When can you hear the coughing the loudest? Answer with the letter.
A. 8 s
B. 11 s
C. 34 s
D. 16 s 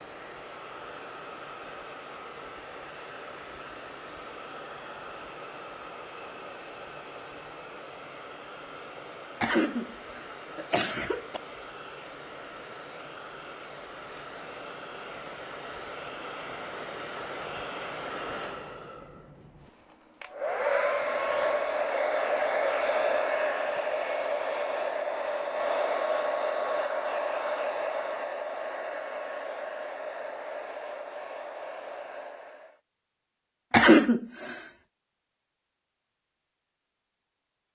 C.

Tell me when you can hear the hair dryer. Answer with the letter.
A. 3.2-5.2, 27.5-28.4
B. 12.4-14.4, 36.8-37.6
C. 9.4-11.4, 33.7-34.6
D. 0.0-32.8
D.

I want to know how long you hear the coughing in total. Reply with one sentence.
You can hear the coughing for 3 seconds altogether.